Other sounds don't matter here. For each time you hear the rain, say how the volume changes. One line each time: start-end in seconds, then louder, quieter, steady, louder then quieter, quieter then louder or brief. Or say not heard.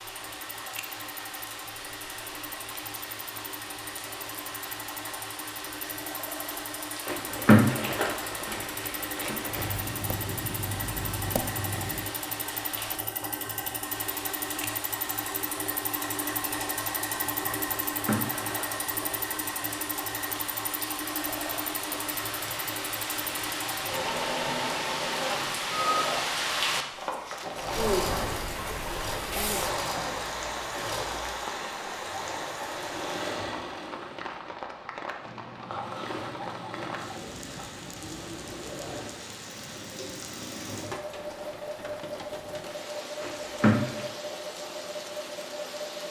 0.0-46.0 louder then quieter.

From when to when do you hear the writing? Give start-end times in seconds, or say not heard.
9.6-12.2, 35.2-37.1.